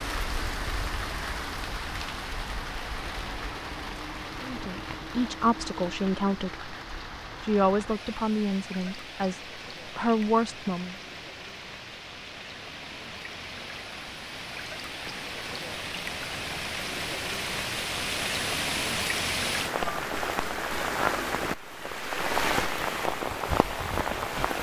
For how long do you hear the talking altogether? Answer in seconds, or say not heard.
6 s.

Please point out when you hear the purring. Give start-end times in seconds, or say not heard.
not heard.